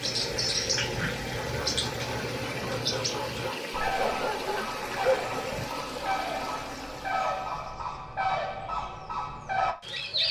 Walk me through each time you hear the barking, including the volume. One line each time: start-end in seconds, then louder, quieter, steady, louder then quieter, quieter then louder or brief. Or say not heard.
0.1-5.7 louder.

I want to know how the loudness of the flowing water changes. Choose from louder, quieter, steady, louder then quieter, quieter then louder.
steady.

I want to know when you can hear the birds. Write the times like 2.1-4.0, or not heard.
0.0-10.2.